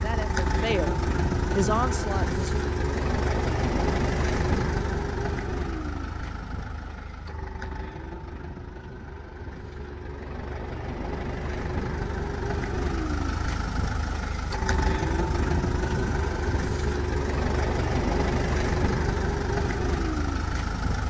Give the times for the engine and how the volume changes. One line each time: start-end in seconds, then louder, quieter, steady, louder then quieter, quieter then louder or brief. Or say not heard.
0.0-21.0 quieter then louder.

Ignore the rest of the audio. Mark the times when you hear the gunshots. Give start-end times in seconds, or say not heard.
not heard.